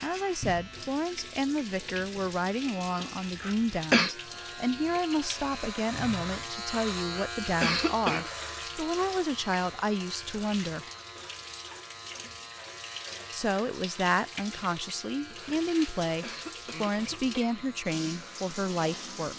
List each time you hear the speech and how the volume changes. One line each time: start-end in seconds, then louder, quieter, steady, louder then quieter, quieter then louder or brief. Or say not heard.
0.0-10.8 steady
13.3-19.3 steady.